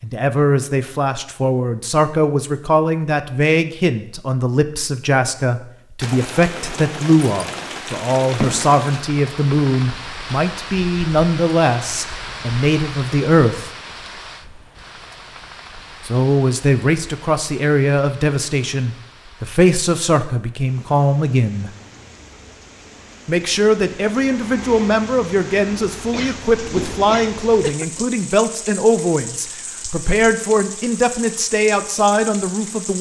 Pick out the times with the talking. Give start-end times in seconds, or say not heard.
0.0-13.7, 16.1-21.7, 23.2-32.9.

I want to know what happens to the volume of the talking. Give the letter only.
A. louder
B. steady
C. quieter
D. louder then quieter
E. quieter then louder
B.